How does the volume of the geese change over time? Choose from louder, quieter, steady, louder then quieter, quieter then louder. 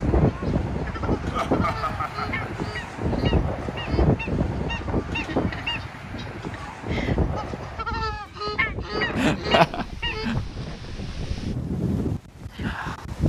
louder.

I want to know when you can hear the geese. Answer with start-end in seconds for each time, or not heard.
0.1-10.3.